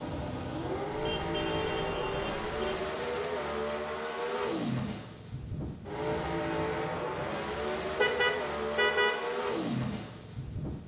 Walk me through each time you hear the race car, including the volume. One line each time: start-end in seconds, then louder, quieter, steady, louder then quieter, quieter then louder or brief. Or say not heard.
0.0-10.8 steady.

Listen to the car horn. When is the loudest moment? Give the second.
9 s.